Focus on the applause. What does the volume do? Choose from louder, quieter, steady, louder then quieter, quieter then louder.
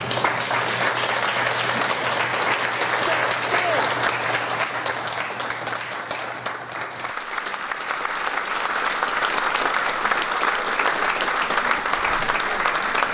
quieter then louder.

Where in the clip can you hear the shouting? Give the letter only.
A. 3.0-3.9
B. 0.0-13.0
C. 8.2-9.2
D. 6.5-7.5
A.